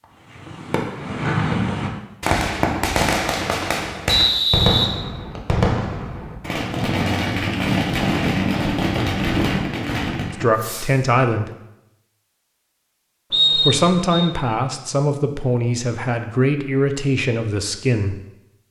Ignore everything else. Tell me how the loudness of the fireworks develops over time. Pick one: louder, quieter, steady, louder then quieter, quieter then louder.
steady.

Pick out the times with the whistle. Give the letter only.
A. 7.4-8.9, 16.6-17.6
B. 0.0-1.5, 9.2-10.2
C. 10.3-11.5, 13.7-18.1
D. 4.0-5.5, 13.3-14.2
D.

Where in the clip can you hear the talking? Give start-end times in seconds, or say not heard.
10.3-11.5, 13.7-18.1.